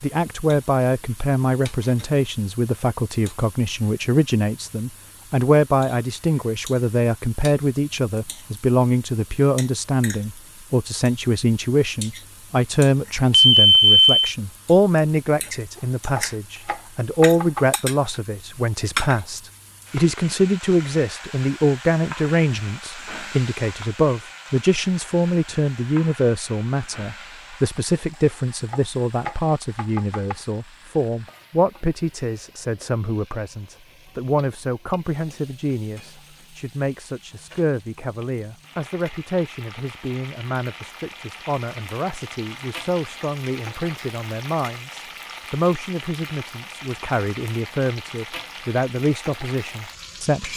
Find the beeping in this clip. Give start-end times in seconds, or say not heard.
13.3-14.2.